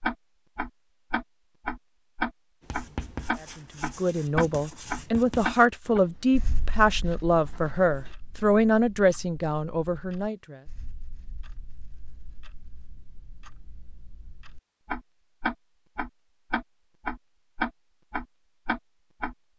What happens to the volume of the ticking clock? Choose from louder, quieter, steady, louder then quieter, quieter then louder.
quieter then louder.